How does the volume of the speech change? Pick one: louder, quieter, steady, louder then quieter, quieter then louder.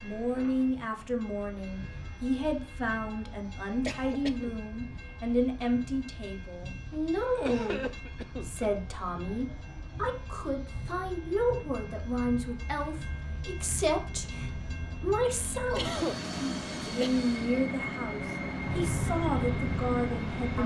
steady.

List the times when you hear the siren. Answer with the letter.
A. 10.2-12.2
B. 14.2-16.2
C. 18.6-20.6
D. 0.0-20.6
C.